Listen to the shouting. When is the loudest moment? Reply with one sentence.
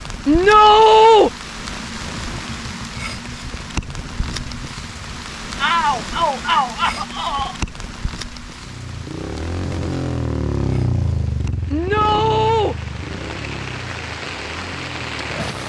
The volume of the shouting peaks at 1 second.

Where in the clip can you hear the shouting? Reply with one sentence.
You can hear the shouting from 0.2 to 1.3 s, from 5.6 to 7.5 s and from 11.7 to 12.8 s.